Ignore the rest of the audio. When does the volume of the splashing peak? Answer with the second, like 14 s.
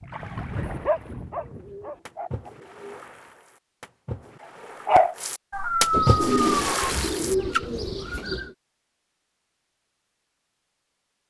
6 s.